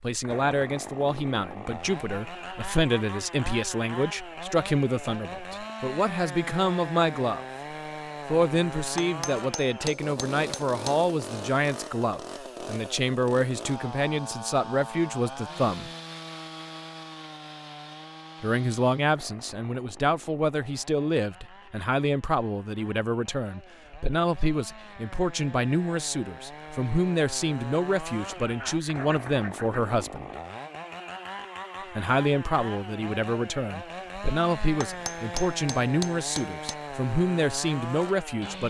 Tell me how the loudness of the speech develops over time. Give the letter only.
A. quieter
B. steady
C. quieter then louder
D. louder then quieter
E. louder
B.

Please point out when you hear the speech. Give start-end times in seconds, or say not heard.
0.0-7.5, 8.2-15.9, 18.4-30.3, 31.9-38.6.